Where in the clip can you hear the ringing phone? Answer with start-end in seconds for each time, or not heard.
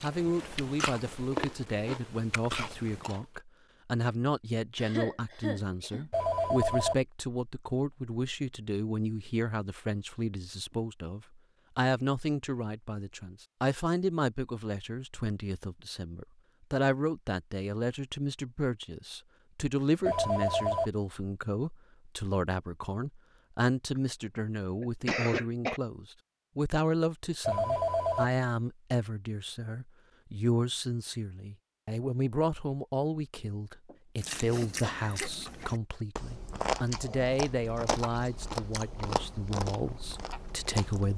6.1-7.0, 20.1-20.9, 27.4-28.3.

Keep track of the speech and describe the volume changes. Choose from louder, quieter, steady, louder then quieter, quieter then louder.
steady.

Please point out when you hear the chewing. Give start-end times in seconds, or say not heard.
0.0-3.2, 34.1-41.1.